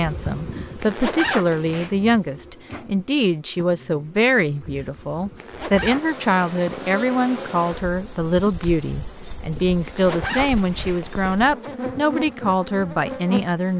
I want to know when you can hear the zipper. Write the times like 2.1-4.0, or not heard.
0.8-1.9, 5.3-6.9, 9.8-11.3.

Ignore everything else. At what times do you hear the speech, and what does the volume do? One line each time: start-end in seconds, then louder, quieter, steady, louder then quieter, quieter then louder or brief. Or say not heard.
0.0-13.7 steady.